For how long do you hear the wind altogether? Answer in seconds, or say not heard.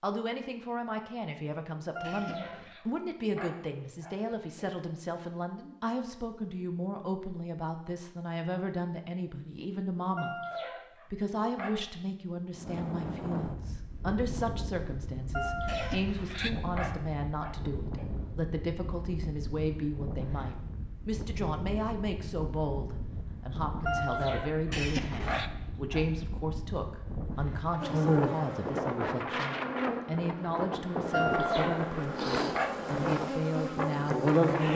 22 s.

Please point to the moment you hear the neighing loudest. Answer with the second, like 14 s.
25 s.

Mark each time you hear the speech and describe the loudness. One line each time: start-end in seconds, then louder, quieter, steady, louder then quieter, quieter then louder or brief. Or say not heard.
0.0-10.4 steady
11.1-34.5 steady.